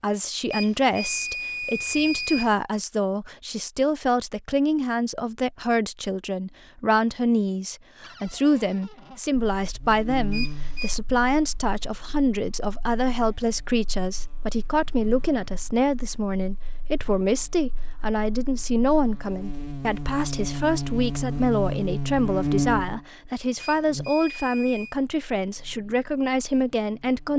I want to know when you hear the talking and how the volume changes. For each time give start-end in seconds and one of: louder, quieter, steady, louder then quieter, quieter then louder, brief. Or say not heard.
0.0-27.3 steady.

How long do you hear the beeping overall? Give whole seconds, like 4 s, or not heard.
4 s.